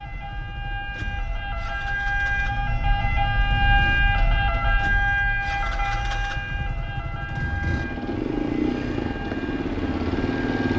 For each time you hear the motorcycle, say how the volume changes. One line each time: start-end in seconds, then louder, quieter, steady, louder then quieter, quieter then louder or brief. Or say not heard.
0.0-10.7 louder.